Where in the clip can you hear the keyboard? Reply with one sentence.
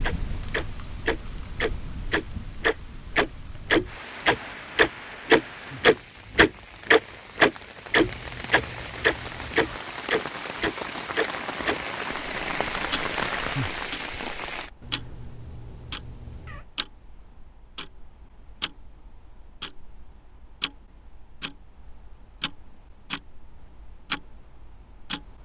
You can't hear the keyboard here.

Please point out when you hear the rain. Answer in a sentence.
You can hear the rain from 0.0 to 14.7 s.